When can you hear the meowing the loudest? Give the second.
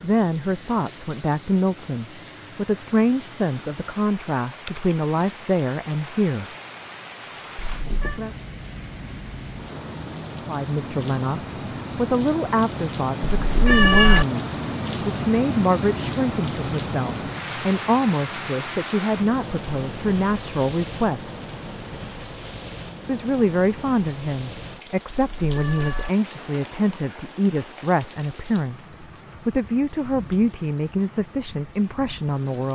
14 s.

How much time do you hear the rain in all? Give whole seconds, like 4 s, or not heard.
33 s.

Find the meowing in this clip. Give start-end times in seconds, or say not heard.
7.6-8.2, 13.3-14.2, 25.1-26.1.